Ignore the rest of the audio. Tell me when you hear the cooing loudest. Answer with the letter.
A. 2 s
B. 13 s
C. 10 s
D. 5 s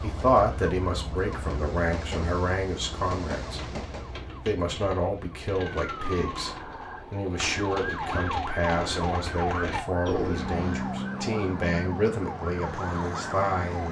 C.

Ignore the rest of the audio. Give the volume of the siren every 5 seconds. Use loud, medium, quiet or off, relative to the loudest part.
medium, loud, loud.